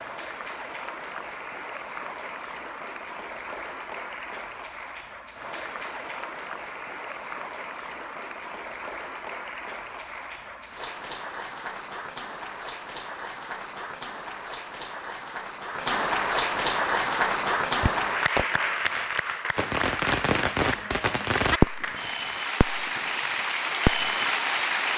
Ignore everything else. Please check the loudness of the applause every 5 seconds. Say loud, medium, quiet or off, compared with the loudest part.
medium, medium, medium, loud, loud.